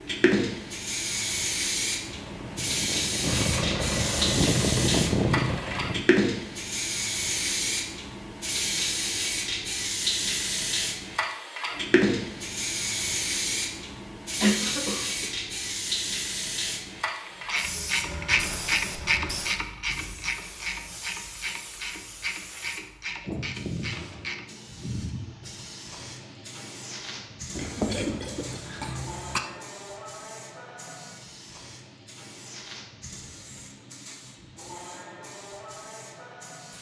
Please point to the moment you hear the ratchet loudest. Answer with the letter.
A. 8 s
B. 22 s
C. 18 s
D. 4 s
C.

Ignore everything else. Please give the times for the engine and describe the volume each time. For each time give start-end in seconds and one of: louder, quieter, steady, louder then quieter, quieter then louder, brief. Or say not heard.
2.0-6.0 louder.